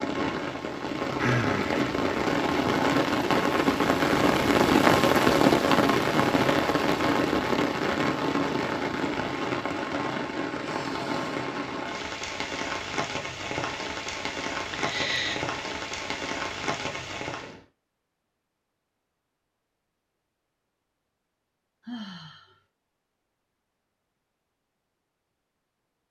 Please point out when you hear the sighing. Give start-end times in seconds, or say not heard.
1.1-1.8, 14.7-15.4, 21.8-22.6.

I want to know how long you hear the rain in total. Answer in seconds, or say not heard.
18 s.